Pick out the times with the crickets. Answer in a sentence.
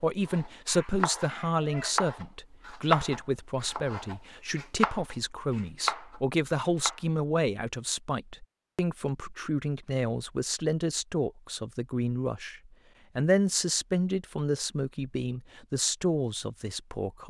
You can't hear the crickets here.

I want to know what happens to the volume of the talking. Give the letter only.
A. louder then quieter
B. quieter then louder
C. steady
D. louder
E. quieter
C.